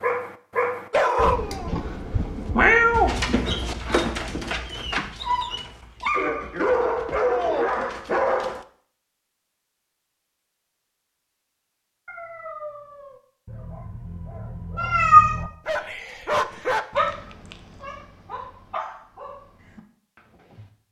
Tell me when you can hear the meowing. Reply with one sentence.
The meowing can be heard from 1.1 to 3.1 s and from 14.8 to 15.4 s.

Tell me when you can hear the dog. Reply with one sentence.
You can hear the dog from 0.0 to 8.7 s and from 12.1 to 20.7 s.